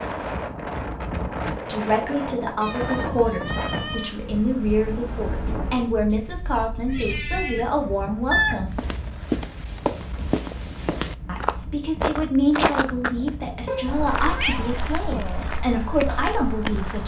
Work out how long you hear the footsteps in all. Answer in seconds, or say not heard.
8 s.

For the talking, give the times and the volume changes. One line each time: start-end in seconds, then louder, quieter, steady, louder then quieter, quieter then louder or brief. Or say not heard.
1.6-8.8 steady
11.2-17.0 quieter then louder.